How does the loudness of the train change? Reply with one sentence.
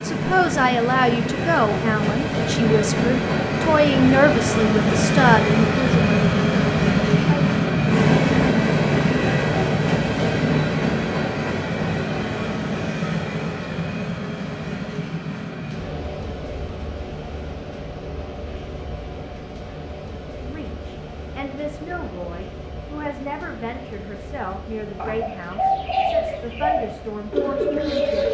The volume of the train goes down.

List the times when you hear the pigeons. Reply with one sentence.
The pigeons can be heard from 24.9 to 28.2 s.